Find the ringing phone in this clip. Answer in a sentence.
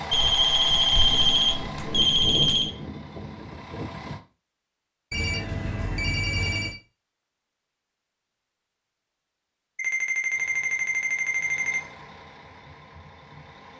You can hear the ringing phone from 0.1 to 2.7 s, from 5.1 to 6.8 s and from 9.8 to 11.8 s.